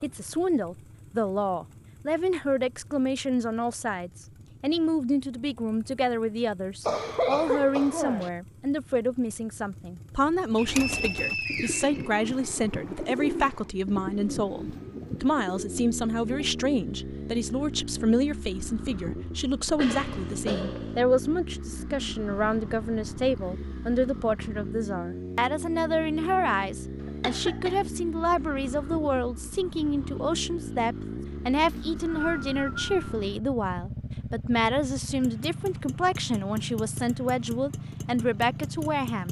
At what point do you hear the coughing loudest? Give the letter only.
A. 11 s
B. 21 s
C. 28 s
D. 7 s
D.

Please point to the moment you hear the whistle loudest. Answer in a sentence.
The loudest moment of the whistle is at 11 seconds.